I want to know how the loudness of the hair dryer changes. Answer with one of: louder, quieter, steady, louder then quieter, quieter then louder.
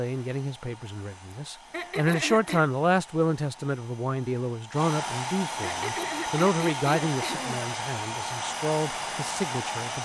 louder.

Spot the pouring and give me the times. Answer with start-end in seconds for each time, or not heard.
not heard.